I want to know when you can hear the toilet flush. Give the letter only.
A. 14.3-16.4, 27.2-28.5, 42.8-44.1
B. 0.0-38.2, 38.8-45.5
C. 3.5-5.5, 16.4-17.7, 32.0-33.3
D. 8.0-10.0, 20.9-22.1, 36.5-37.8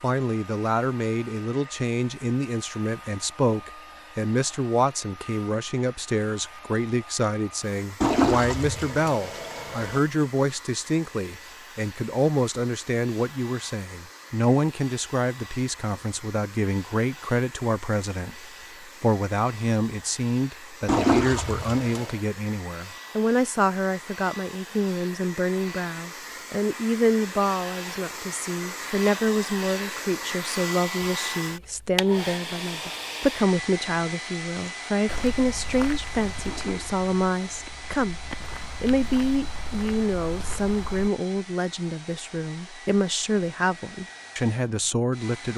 D.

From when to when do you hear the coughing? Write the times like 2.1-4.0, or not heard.
not heard.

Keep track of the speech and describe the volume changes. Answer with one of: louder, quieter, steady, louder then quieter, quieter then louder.
steady.